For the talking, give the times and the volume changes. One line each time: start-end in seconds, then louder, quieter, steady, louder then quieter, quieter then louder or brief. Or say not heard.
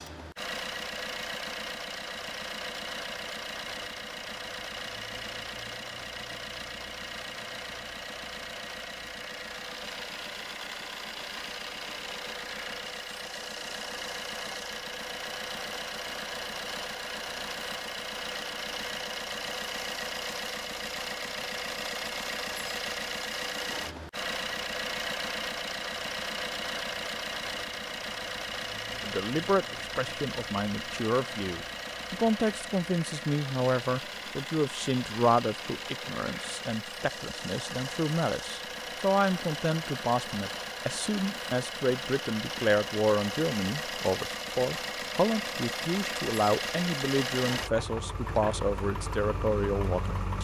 29.0-50.4 steady.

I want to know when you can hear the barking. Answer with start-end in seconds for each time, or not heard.
not heard.